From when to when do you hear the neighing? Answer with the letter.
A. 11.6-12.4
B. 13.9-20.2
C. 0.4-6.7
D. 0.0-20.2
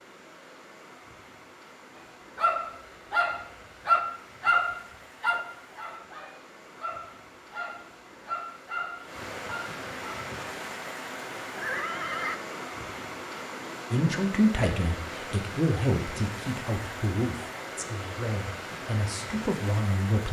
A.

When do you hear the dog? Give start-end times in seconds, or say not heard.
2.4-10.3.